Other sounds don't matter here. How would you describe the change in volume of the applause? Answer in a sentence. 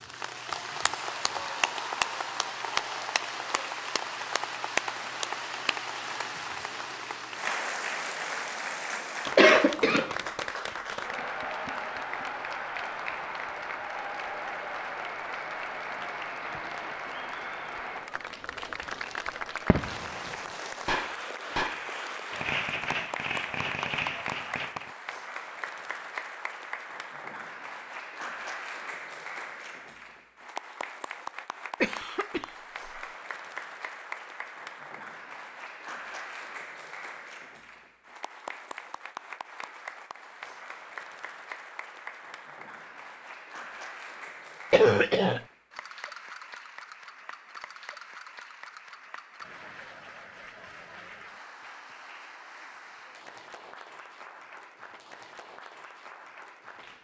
The loudness of the applause goes down.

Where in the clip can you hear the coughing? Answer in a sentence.
The coughing can be heard from 9.3 to 10.2 s, from 31.8 to 33.0 s and from 44.7 to 45.4 s.